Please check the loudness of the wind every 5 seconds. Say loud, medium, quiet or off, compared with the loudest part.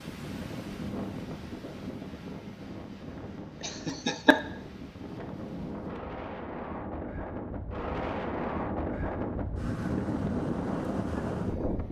medium, loud, loud.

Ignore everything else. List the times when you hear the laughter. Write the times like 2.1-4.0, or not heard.
3.6-4.4.